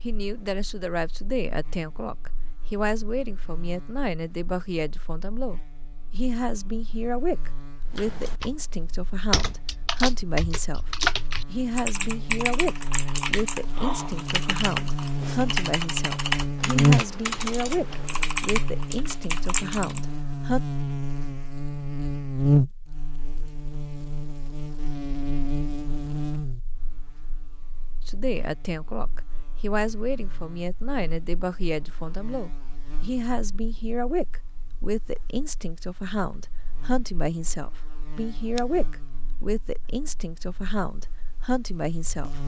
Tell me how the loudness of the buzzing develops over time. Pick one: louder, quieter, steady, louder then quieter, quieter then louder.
louder then quieter.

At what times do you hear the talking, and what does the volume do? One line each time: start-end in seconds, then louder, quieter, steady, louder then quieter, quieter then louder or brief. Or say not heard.
0.0-20.6 steady
28.1-42.4 steady.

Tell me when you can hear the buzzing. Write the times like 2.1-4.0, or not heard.
0.0-42.4.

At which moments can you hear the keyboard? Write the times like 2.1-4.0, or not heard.
7.8-20.0.